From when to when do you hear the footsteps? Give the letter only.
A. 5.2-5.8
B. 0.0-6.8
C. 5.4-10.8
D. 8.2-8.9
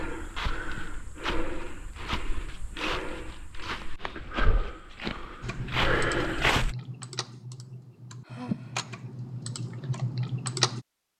B.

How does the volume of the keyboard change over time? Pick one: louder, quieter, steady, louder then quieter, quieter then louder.
quieter then louder.